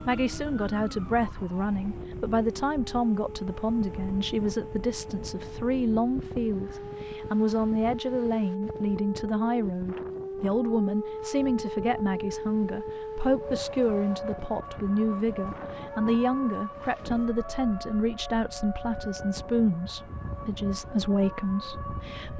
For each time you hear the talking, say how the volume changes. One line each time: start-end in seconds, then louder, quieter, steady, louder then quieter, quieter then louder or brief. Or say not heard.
0.1-22.3 steady.